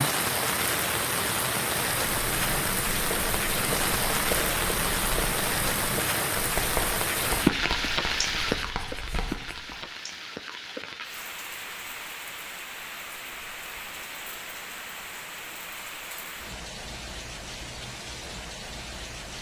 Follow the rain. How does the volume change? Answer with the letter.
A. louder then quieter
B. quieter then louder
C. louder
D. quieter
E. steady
D.